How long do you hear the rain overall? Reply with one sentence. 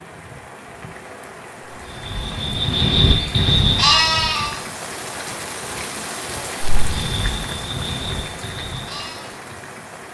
The rain can be heard for 10 seconds in total.